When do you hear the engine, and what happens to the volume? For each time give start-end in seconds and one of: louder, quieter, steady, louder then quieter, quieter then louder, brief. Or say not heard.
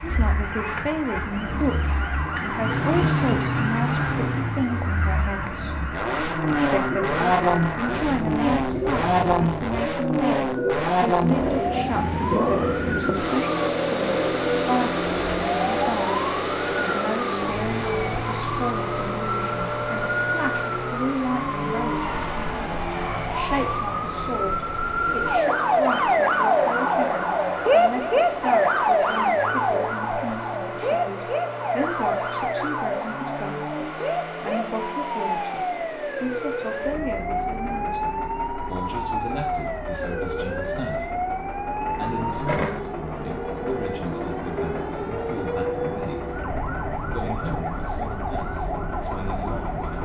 0.0-50.0 quieter.